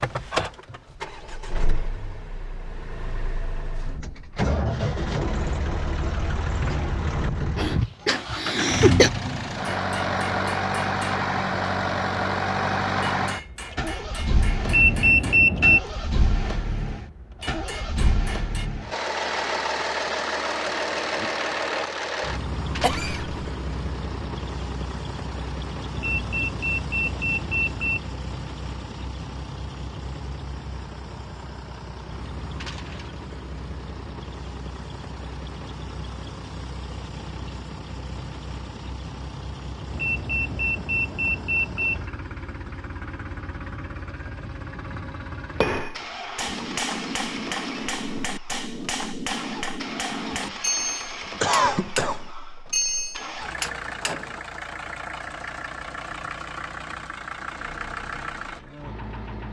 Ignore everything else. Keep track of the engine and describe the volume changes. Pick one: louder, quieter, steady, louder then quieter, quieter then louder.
quieter.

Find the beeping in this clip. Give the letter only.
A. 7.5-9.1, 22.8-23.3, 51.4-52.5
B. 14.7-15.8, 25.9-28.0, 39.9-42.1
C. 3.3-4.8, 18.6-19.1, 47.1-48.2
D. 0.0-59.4
B.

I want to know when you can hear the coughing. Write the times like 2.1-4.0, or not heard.
7.5-9.1, 22.8-23.3, 51.4-52.5.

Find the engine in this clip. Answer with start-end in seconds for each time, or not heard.
0.0-59.4.